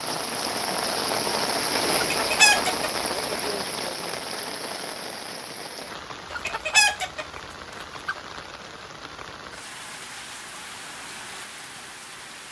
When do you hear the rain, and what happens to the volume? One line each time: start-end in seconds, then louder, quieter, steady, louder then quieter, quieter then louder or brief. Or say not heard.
0.0-12.4 quieter.